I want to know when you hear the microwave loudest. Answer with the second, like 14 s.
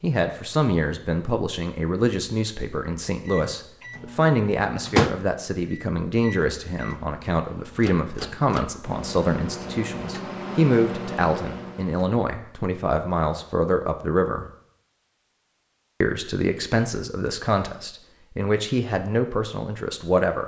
5 s.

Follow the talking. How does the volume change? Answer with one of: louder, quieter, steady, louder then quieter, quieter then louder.
steady.